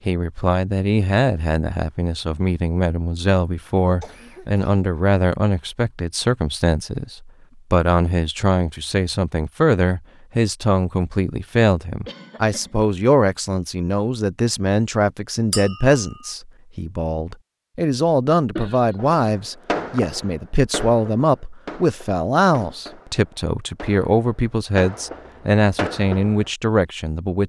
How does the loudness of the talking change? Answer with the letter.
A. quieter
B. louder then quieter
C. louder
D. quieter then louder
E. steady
E.